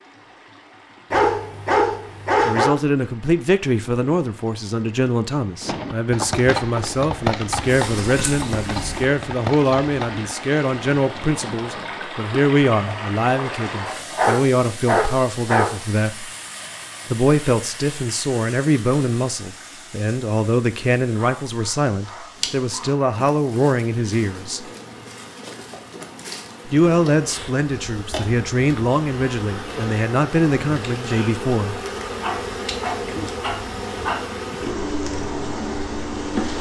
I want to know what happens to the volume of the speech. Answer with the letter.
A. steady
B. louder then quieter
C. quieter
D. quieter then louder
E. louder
A.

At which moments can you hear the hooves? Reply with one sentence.
The hooves can be heard from 5.6 to 12.1 s.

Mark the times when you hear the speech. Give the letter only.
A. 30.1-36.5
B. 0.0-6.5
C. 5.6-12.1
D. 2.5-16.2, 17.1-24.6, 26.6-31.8
D.